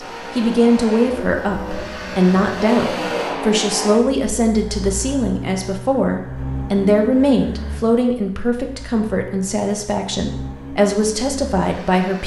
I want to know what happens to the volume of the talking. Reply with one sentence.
The volume of the talking stays about the same.